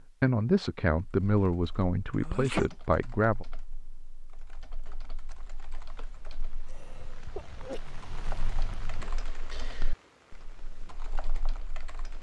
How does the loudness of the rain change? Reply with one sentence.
The loudness of the rain goes up, then down.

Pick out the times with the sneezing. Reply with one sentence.
You can hear the sneezing from 2.2 to 2.7 s and from 6.7 to 7.8 s.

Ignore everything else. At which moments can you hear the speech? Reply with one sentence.
You can hear the speech from 0.0 to 3.5 s.